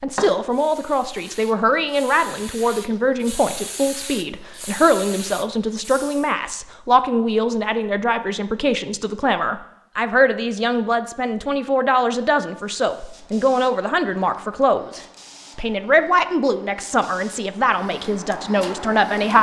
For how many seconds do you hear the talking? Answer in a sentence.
You can hear the talking for 19 seconds altogether.